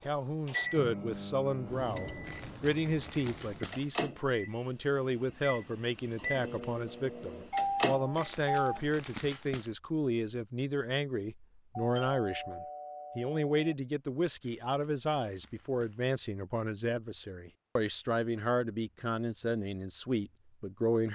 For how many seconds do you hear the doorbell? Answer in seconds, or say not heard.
3 s.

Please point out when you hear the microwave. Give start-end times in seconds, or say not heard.
0.0-8.2.